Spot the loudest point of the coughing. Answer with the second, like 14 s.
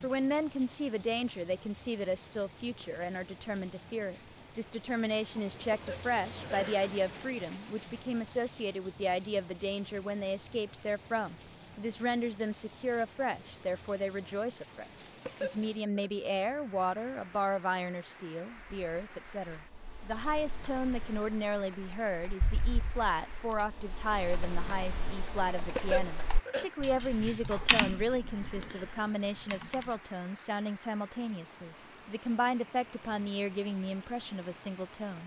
26 s.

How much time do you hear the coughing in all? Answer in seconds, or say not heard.
3 s.